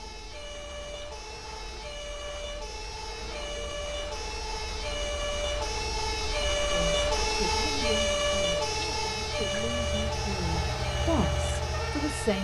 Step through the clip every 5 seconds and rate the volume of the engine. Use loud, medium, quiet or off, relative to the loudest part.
off, medium, loud.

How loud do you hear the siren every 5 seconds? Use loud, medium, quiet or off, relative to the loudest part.
medium, loud, medium.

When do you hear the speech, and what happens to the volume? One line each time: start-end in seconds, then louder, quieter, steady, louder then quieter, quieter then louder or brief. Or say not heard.
6.7-12.3 quieter then louder.